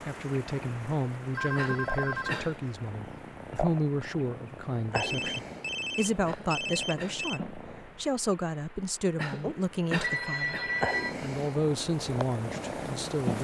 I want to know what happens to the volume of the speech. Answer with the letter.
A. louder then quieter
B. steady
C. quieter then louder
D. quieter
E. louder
B.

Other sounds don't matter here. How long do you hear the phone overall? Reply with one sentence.
The phone can be heard for 5 seconds in total.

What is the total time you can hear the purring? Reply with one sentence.
You can hear the purring for 12 seconds altogether.